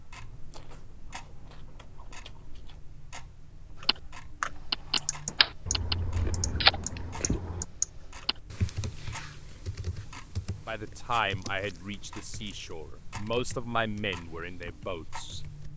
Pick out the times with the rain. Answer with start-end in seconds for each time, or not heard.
not heard.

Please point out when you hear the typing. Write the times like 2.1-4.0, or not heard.
3.8-15.7.